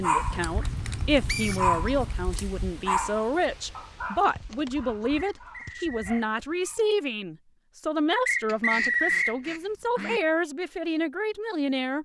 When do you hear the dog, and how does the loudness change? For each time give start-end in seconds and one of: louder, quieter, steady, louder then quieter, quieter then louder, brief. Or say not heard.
0.0-6.9 louder then quieter.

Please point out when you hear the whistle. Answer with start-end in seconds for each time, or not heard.
1.2-1.9, 5.2-6.2, 8.2-9.3.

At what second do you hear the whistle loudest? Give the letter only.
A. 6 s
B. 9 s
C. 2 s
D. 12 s
B.